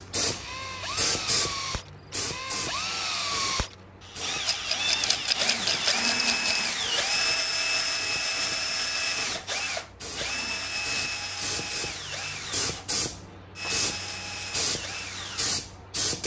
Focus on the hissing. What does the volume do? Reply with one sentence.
The volume of the hissing goes down, then up.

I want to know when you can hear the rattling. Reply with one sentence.
The rattling can be heard from 4.5 to 6.7 s.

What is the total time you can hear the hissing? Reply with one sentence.
The hissing can be heard for 16 seconds in total.